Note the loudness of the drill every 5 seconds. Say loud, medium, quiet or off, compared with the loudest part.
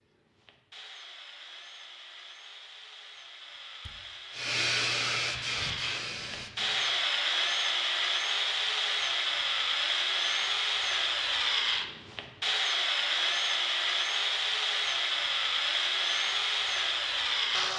quiet, loud, loud, loud.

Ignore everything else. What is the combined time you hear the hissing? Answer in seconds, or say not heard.
3 s.